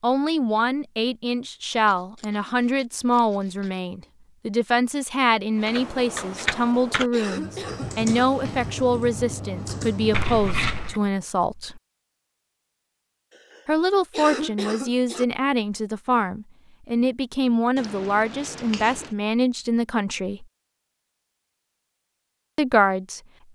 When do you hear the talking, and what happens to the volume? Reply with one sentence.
The talking can be heard from 0.0 to 11.8 s, at a steady volume; from 13.7 to 20.4 s, at a steady volume; and briefly from 22.6 to 23.2 s.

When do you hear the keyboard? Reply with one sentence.
The keyboard can be heard from 5.5 to 11.1 s.